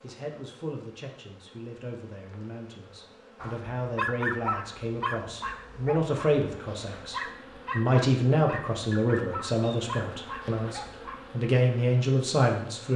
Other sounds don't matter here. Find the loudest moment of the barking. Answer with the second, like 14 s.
4 s.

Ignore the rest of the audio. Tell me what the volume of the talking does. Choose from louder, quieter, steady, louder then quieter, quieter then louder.
louder.